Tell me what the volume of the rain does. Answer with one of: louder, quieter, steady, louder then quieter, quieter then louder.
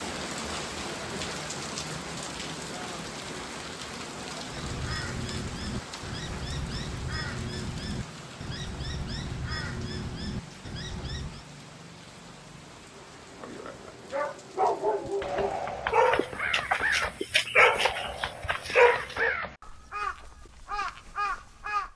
quieter.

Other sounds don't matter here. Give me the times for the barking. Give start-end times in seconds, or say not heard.
12.9-19.4.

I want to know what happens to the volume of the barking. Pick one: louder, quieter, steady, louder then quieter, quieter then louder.
louder.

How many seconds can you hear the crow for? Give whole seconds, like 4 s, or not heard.
14 s.